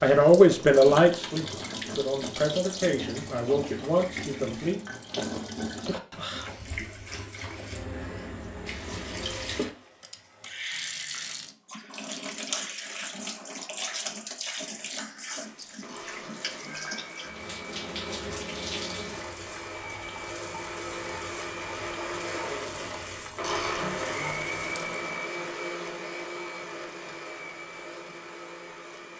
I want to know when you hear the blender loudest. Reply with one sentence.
The volume of the blender peaks at 24 seconds.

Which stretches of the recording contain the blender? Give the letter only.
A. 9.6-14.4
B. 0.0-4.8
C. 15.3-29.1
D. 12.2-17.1
C.